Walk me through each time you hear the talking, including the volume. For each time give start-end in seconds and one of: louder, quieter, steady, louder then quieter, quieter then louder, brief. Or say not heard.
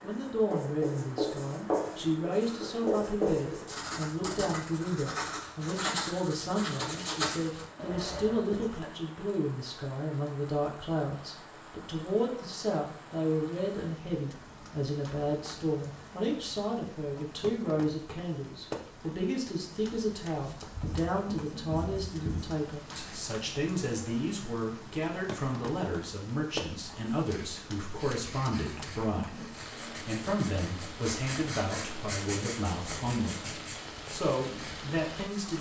0.0-35.5 steady.